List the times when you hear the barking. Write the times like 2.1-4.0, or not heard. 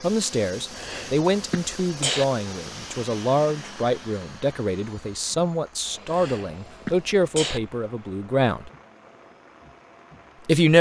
not heard.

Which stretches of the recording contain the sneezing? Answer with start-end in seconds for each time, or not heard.
0.7-2.2, 6.0-7.6.